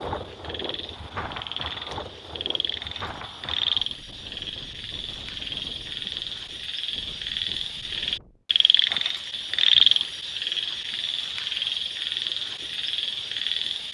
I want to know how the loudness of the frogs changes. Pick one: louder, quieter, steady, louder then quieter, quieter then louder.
louder then quieter.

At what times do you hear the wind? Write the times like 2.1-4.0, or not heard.
0.0-8.4.